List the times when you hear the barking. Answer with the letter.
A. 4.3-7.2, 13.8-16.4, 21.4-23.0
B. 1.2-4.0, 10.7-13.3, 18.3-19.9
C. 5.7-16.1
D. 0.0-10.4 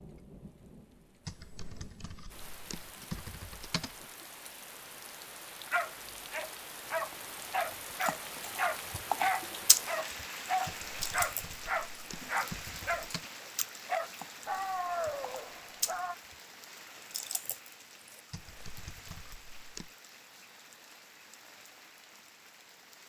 C.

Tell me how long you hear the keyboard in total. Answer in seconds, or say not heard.
7 s.